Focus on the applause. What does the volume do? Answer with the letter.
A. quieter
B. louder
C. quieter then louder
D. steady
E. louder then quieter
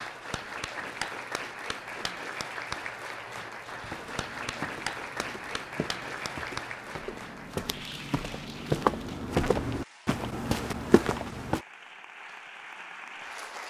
A.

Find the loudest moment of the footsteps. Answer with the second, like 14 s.
9 s.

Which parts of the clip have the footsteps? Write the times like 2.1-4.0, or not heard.
3.8-11.7.